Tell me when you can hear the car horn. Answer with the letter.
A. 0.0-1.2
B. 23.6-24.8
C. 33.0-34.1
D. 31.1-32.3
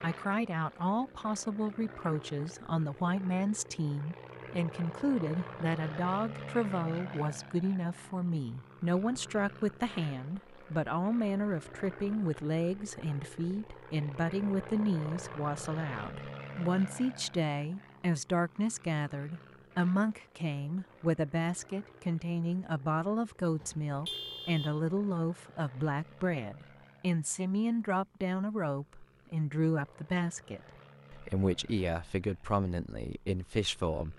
B.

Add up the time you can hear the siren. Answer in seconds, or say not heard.
not heard.